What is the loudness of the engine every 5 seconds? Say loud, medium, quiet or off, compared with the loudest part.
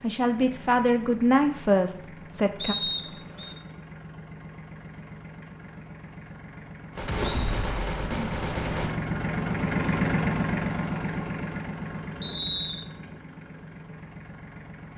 quiet, loud, loud.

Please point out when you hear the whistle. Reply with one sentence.
You can hear the whistle from 2.5 to 3.5 s and from 12.2 to 12.8 s.